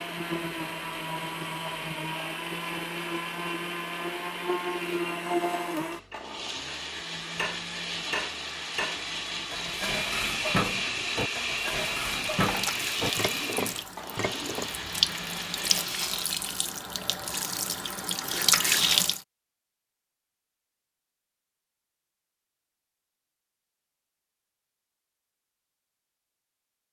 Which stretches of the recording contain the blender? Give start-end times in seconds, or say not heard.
0.0-16.1.